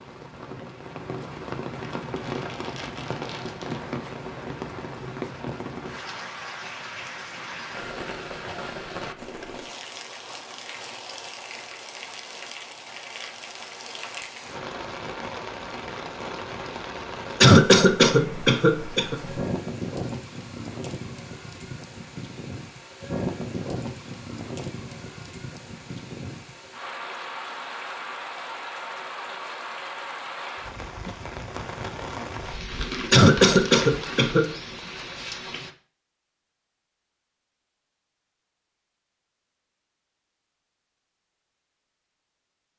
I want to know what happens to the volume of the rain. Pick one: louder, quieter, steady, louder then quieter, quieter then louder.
steady.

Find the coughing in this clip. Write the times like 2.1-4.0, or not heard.
17.4-19.1, 33.1-34.5.